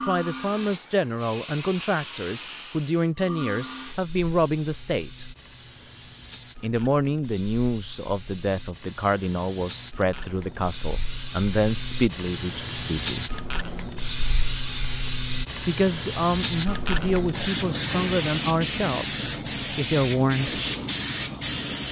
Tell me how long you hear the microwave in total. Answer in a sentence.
You can't hear the microwave here.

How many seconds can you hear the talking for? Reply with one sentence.
You can hear the talking for 17 seconds altogether.